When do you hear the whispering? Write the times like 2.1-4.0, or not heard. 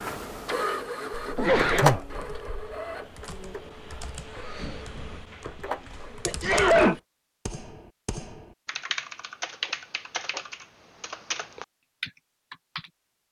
not heard.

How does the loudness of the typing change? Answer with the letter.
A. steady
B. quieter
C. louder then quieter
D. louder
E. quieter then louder
D.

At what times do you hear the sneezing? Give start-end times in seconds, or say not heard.
1.1-2.7, 5.8-7.0, 9.6-10.4.